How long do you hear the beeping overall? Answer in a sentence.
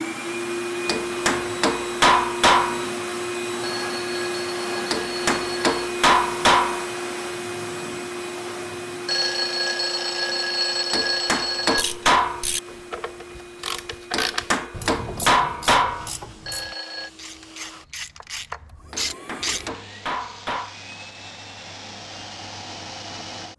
The beeping can be heard for 6 seconds in total.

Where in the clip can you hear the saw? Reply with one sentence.
The saw can't be heard in this clip.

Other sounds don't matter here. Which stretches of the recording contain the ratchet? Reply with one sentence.
The ratchet can be heard from 11.6 to 19.8 s.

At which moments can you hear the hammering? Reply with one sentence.
You can hear the hammering from 0.8 to 2.9 s, from 4.9 to 6.8 s, from 10.9 to 12.4 s, from 14.1 to 16.1 s and from 18.9 to 20.8 s.